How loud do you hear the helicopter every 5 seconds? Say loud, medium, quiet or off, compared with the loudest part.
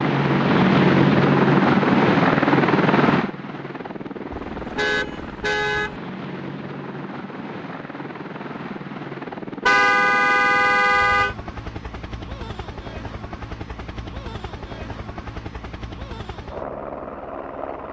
loud, quiet, quiet, quiet.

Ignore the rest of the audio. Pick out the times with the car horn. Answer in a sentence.
You can hear the car horn from 4.3 to 6.0 s and from 9.7 to 11.3 s.